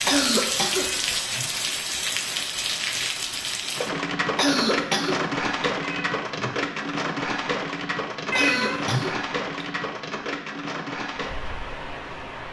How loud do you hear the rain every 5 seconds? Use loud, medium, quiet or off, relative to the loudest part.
loud, loud, medium.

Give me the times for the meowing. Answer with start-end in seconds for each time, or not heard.
0.8-1.6, 5.8-6.7, 8.3-9.2.